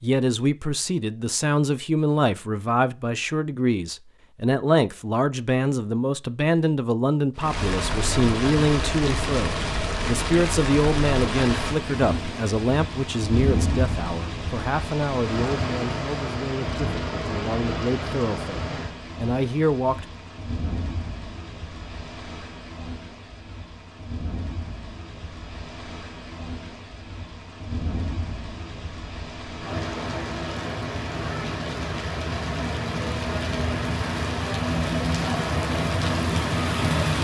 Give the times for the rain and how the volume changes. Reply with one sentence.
You can hear the rain from 7.3 to 37.2 s, getting quieter then louder.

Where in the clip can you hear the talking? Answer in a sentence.
The talking can be heard from 0.0 to 20.1 s.